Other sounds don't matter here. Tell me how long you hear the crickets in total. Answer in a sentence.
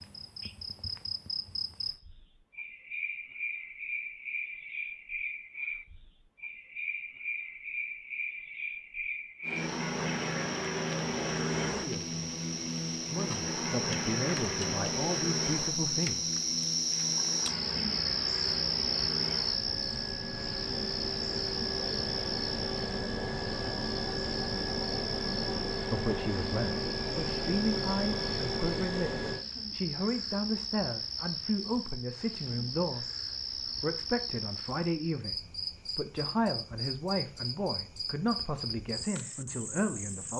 The crickets can be heard for 40 seconds in total.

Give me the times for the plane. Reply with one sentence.
You can hear the plane from 9.4 to 29.4 s.